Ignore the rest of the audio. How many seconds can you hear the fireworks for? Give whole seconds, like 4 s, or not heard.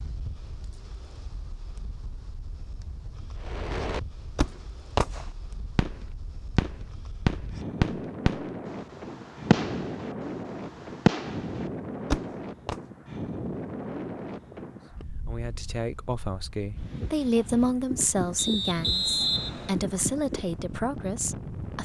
9 s.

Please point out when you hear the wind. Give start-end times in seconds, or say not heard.
0.0-21.7.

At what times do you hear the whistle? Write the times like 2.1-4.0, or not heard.
18.4-19.8.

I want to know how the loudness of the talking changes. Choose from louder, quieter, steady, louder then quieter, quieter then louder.
louder then quieter.